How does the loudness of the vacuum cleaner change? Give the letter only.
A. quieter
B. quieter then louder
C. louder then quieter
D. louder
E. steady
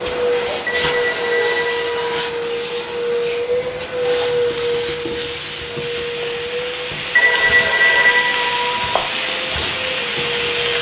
A.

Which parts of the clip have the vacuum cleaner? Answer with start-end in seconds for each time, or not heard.
0.0-10.7.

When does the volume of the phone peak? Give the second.
8 s.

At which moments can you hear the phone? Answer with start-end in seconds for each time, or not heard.
0.7-2.1, 7.2-9.1.